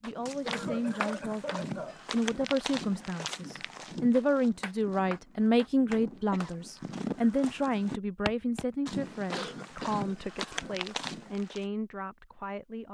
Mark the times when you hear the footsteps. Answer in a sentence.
The footsteps can be heard from 0.1 to 11.7 s.